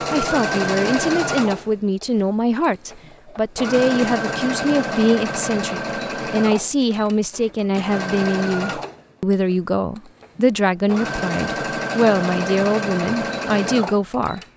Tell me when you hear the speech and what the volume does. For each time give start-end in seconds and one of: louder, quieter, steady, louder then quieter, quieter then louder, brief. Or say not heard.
0.1-14.4 steady.